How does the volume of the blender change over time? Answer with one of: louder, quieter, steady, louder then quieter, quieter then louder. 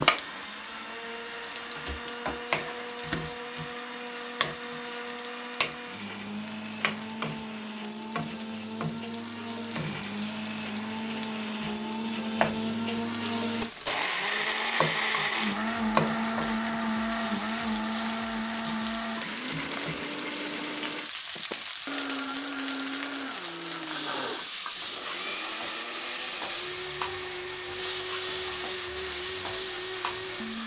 louder then quieter.